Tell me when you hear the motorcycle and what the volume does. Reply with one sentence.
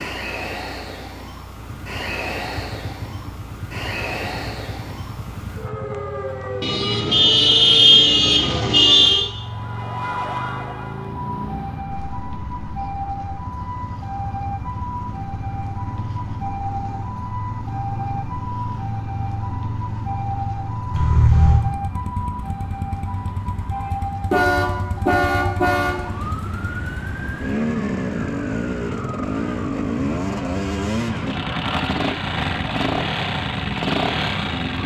The motorcycle can be heard from 1.6 to 34.8 s, getting louder.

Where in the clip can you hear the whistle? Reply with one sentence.
You can't hear the whistle here.